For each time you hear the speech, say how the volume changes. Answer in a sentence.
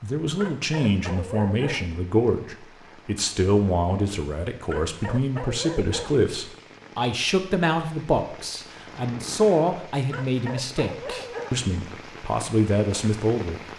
The speech can be heard from 0.0 to 13.6 s, at a steady volume.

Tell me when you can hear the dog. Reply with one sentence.
You can hear the dog from 0.3 to 1.9 s, from 4.7 to 6.2 s and from 10.1 to 11.6 s.